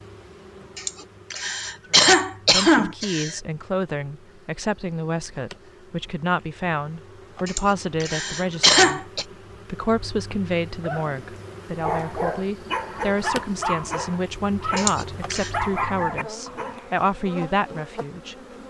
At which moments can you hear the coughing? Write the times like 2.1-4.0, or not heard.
0.8-3.4, 7.5-9.2, 14.8-15.5.